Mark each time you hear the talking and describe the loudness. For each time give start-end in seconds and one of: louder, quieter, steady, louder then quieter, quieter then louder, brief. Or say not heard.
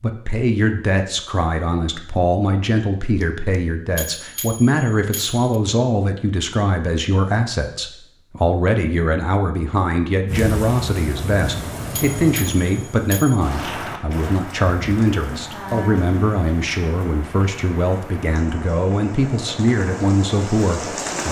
0.0-21.2 steady.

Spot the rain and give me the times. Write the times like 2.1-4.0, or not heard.
10.2-21.2.